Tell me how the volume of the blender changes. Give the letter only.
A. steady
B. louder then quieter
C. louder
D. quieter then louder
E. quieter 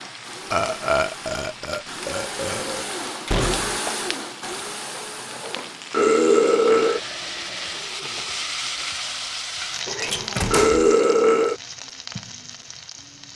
B.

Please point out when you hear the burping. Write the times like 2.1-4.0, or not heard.
0.5-2.9, 5.4-7.0, 10.0-11.6.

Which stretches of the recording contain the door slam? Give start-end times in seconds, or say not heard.
3.2-3.8, 10.0-10.8.